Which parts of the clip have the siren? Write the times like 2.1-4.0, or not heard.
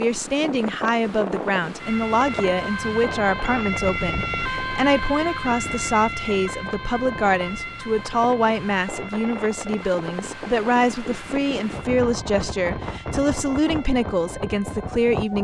1.8-15.3.